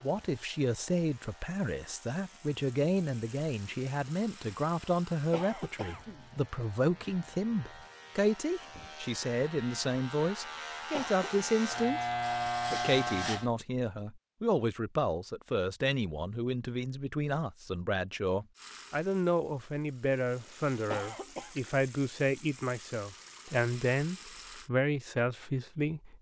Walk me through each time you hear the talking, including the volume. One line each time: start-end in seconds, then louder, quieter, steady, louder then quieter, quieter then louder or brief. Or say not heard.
0.0-12.1 steady
12.7-26.1 steady.